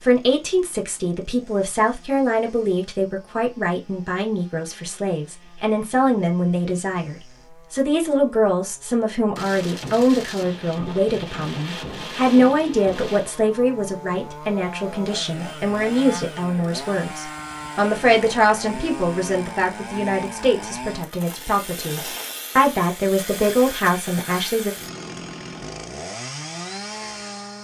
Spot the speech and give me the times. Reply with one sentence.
The speech can be heard from 0.0 to 24.8 s.